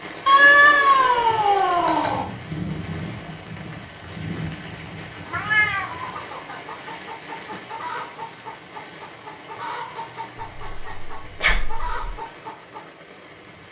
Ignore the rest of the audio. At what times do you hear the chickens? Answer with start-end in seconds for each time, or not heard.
5.8-12.9.